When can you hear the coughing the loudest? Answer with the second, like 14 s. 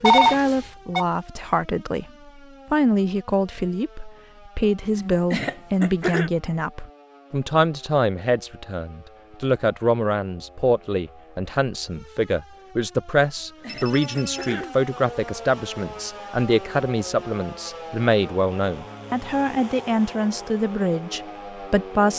6 s.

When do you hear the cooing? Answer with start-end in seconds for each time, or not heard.
not heard.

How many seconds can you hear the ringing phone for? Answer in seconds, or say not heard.
2 s.